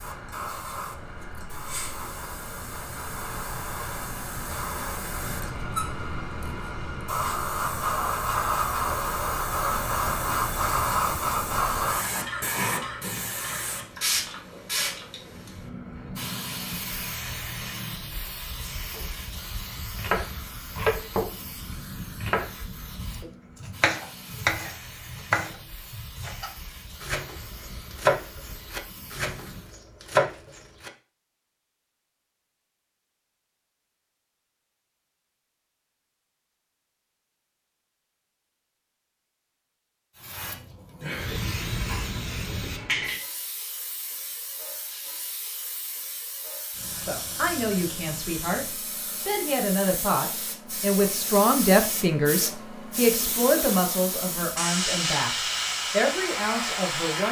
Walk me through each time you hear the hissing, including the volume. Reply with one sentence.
You can hear the hissing from 0.0 to 29.8 s, getting louder then quieter; and from 40.1 to 57.2 s, getting quieter then louder.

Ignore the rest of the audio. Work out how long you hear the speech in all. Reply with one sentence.
The speech can be heard for 10 seconds in total.